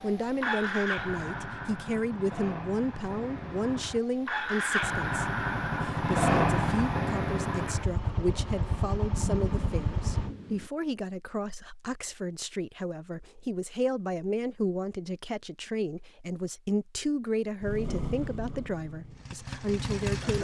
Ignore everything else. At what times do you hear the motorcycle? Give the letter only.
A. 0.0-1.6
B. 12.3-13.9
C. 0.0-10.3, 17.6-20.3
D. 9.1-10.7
C.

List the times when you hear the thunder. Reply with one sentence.
The thunder can be heard from 9.1 to 10.7 s.